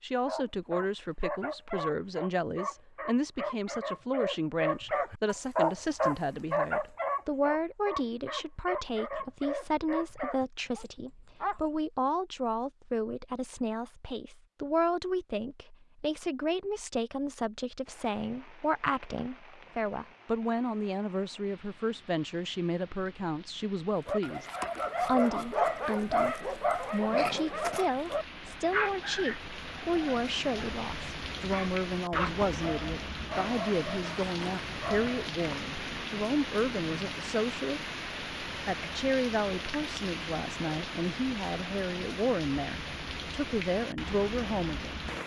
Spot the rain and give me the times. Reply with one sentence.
The rain can be heard from 17.9 to 45.2 s.